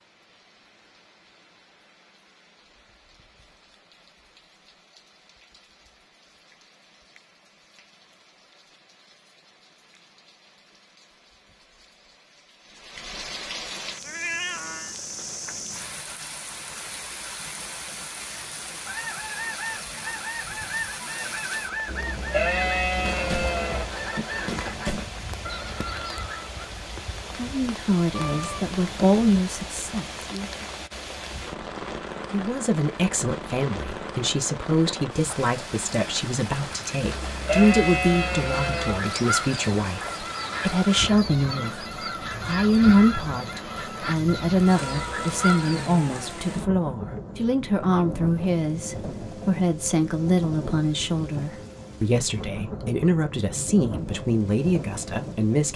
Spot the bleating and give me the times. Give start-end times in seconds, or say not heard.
21.9-23.9, 37.0-39.0.